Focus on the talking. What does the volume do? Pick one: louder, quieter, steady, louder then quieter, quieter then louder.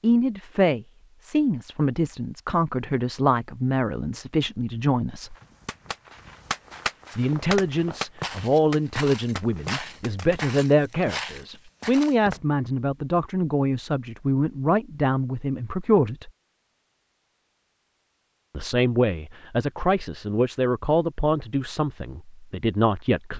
steady.